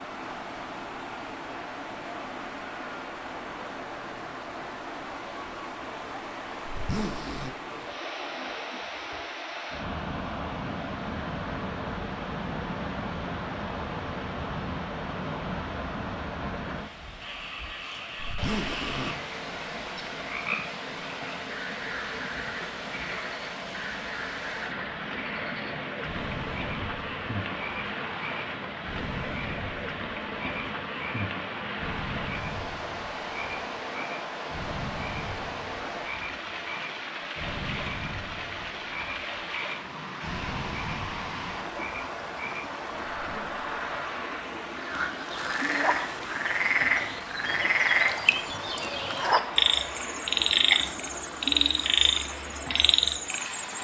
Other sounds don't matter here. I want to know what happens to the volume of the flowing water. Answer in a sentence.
The loudness of the flowing water stays about the same.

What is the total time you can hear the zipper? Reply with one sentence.
You can hear the zipper for 3 seconds altogether.